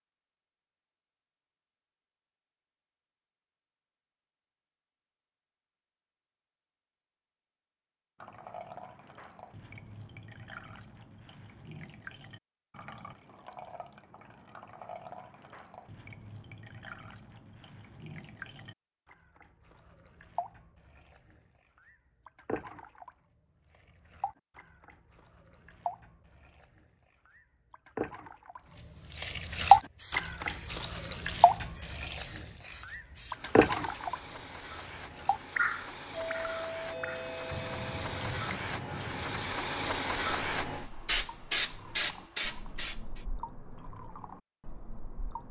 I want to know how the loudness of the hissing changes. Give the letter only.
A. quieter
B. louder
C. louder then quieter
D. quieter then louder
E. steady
B.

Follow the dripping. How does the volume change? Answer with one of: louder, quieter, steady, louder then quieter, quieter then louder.
louder then quieter.